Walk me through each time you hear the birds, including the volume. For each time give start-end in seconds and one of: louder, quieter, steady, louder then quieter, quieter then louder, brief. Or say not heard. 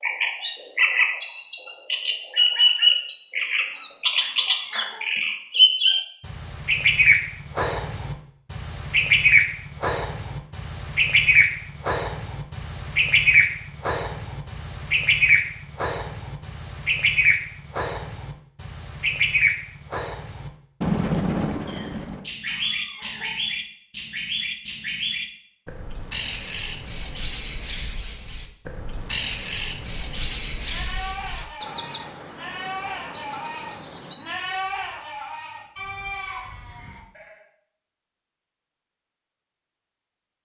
0.0-34.1 quieter.